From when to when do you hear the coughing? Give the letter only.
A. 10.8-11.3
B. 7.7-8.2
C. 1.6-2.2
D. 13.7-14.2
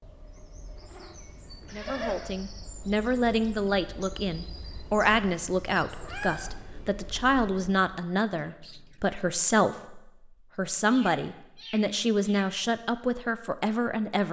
C.